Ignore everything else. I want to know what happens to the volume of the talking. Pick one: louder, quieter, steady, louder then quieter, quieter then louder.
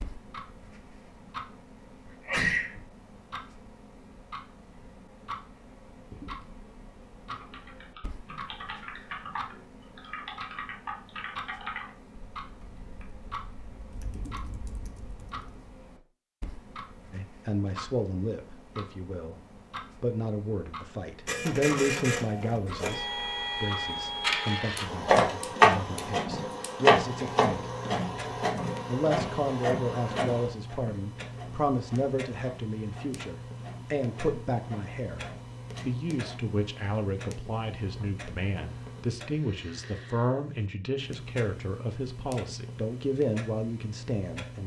steady.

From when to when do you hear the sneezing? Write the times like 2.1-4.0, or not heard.
2.0-2.9.